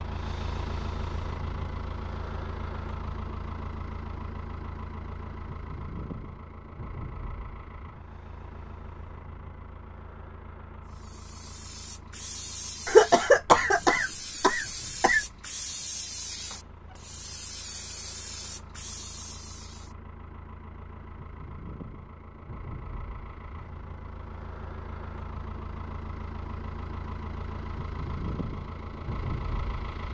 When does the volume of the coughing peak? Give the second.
13 s.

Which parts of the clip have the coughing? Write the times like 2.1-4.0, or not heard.
12.8-15.2.